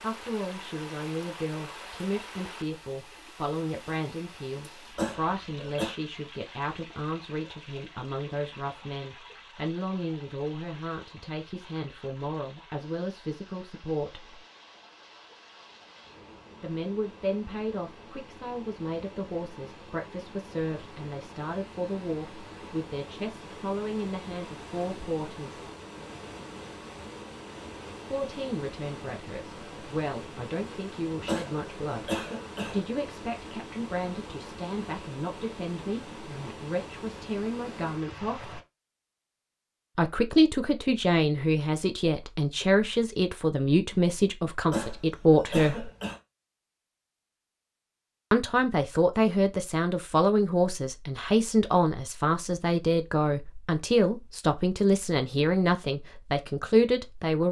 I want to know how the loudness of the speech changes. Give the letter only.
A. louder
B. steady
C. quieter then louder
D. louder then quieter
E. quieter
A.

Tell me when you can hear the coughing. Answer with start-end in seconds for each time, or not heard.
5.0-6.0, 31.2-32.9, 44.7-46.2.